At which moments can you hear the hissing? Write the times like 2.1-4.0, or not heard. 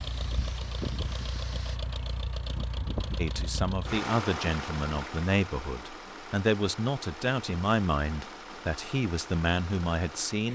0.0-1.8.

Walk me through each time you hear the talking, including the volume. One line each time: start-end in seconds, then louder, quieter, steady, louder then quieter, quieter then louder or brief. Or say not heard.
3.1-10.5 steady.